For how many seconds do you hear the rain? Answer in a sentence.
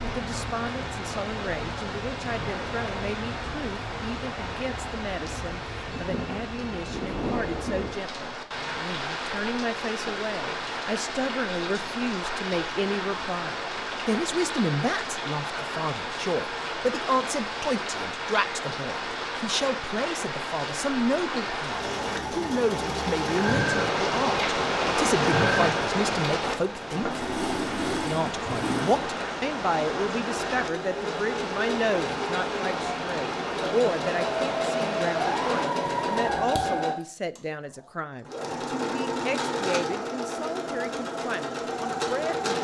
You can hear the rain for 36 seconds altogether.